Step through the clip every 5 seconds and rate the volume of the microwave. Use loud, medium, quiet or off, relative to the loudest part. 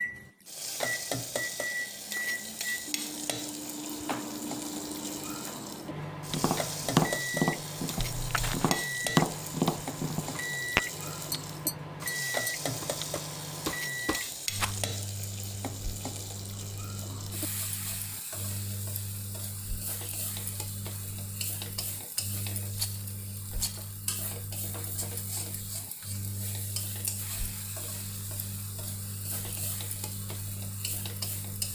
loud, loud, loud, medium, medium, medium, medium.